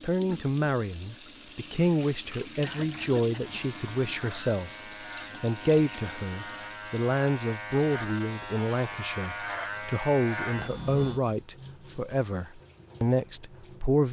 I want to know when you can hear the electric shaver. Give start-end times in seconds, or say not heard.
3.4-11.2.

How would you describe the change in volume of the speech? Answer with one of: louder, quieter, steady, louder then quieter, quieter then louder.
steady.